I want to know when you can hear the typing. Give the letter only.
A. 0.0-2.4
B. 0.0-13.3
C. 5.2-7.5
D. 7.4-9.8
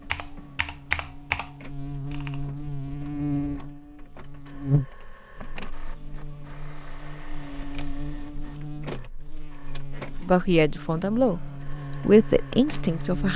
A.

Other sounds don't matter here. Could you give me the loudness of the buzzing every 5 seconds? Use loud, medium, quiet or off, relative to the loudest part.
loud, medium, medium.